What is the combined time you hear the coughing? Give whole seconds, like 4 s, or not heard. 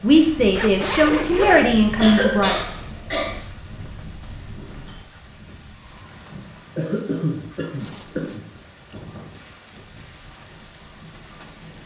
3 s.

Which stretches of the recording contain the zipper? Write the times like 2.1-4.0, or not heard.
0.6-1.8, 7.8-8.4.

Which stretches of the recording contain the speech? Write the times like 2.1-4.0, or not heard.
0.0-2.6.